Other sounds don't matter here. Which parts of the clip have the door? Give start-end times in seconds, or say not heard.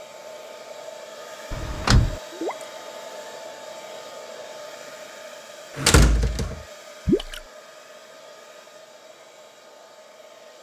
1.5-2.2, 5.8-6.6.